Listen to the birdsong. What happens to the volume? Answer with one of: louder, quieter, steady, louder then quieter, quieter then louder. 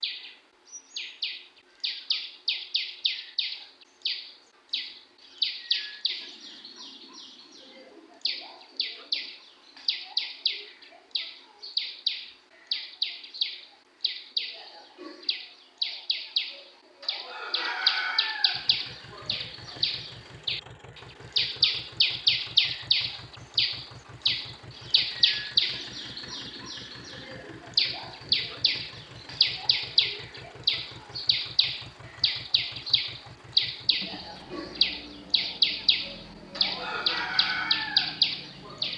louder.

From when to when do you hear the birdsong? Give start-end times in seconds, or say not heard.
0.0-38.9.